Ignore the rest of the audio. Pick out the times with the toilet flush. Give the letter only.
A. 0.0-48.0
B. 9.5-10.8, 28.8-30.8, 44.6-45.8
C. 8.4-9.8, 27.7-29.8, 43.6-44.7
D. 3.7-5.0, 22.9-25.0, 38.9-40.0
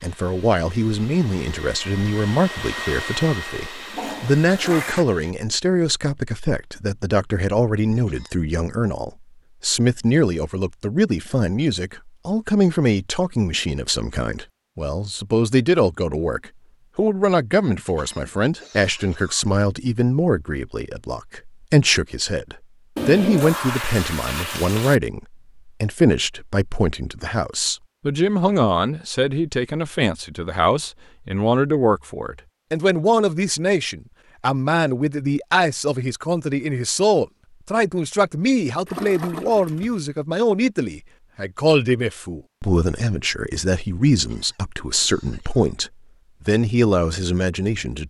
D.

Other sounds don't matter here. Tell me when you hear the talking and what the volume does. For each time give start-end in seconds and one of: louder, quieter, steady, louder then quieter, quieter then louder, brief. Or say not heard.
0.0-48.0 steady.